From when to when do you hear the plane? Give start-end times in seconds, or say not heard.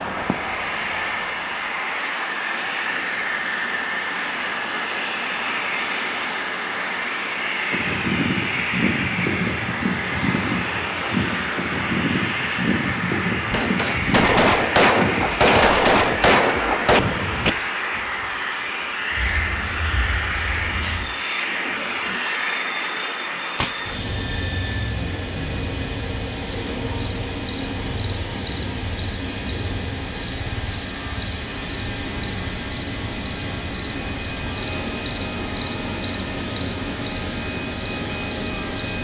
0.0-39.0.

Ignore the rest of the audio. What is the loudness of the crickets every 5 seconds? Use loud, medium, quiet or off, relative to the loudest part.
quiet, loud, loud, loud, loud, loud, loud, loud.